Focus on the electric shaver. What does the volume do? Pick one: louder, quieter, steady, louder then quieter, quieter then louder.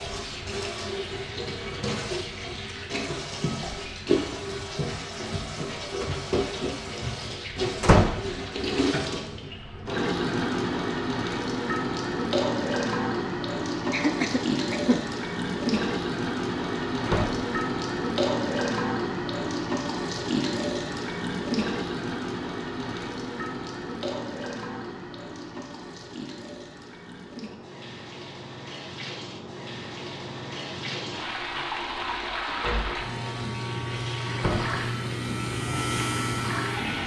louder.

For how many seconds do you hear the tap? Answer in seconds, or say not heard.
37 s.